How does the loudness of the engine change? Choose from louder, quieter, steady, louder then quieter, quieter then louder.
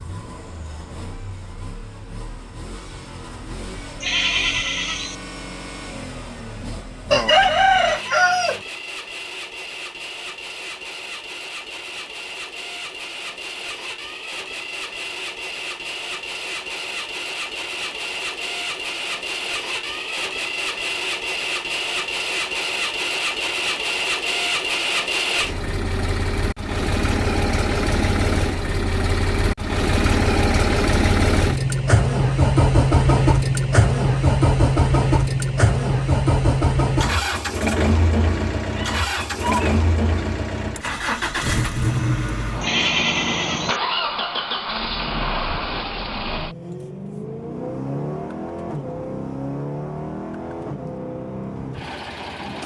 louder then quieter.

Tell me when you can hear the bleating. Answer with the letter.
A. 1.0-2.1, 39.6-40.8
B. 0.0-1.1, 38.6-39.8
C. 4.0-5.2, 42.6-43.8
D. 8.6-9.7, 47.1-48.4
C.